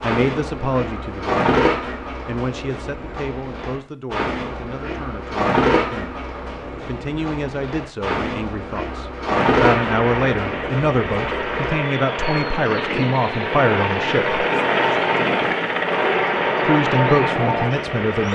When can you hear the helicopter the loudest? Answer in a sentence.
The loudest moment of the helicopter is at 15 seconds.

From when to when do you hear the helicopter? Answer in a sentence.
The helicopter can be heard from 9.6 to 18.3 s.